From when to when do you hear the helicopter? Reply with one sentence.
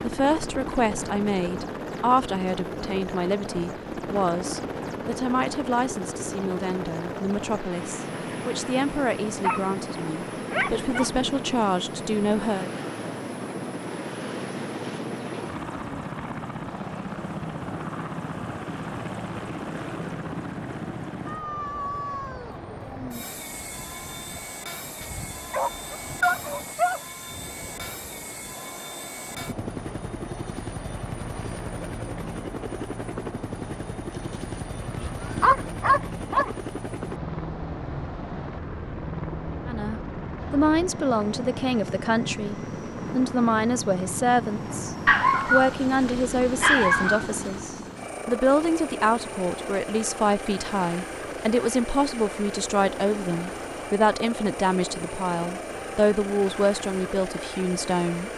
The helicopter can be heard from 0.0 to 58.3 s.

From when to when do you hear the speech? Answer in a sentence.
You can hear the speech from 0.0 to 12.7 s and from 39.6 to 58.3 s.